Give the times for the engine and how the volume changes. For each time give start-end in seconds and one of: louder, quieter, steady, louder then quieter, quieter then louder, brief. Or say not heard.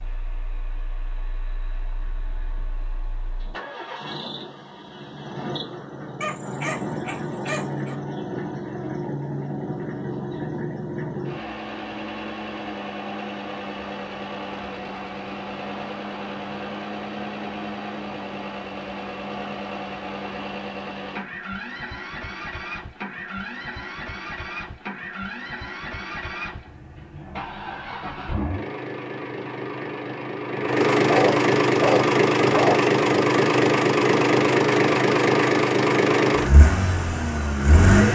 0.0-38.1 louder.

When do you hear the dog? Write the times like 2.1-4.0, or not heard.
6.2-8.0, 30.9-32.9.